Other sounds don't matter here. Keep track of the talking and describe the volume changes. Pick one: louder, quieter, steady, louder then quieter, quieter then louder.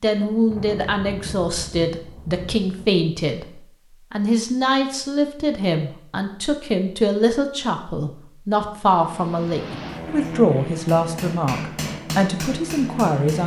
steady.